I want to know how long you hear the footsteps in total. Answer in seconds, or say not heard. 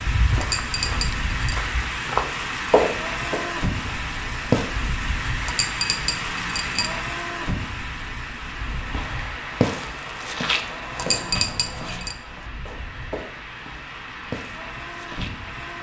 11 s.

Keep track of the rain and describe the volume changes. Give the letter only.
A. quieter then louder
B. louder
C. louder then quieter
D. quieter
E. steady
D.